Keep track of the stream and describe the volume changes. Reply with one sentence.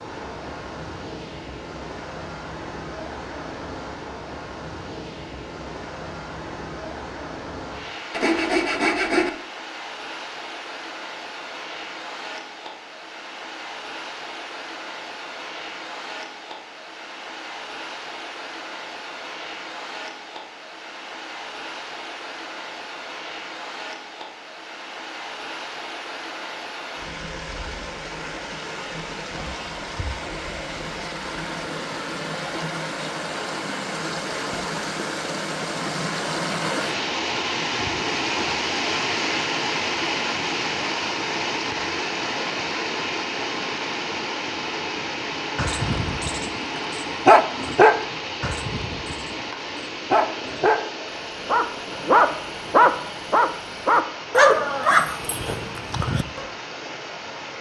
The volume of the stream goes up, then down.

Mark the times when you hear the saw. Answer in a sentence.
You can hear the saw from 8.1 to 9.3 s.